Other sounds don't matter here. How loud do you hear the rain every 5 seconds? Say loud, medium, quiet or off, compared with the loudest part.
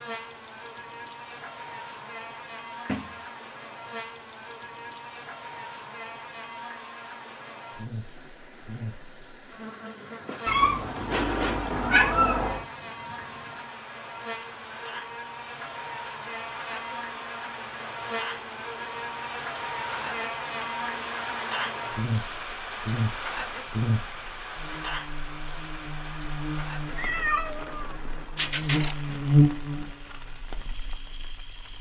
quiet, quiet, medium, medium, loud, medium, medium.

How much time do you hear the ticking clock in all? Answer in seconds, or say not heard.
not heard.